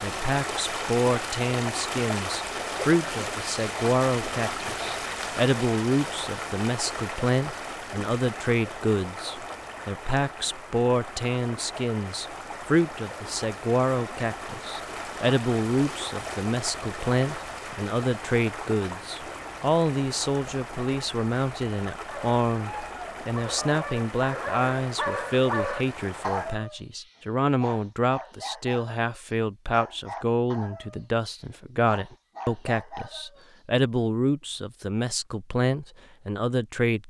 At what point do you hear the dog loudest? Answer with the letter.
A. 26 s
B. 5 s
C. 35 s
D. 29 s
A.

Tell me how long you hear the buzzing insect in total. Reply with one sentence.
You can't hear the buzzing insect here.